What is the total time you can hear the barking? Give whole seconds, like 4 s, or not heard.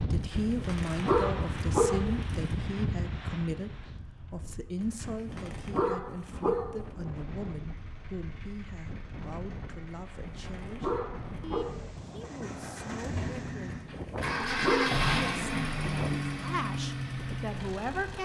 7 s.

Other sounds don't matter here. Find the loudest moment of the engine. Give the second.
15 s.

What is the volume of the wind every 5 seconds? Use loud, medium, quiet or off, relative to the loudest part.
loud, medium, medium, medium.